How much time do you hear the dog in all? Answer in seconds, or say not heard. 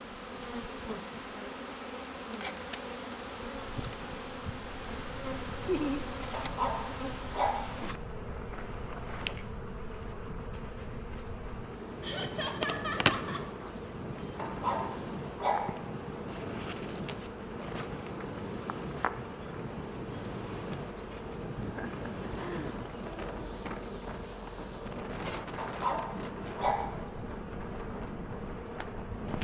4 s.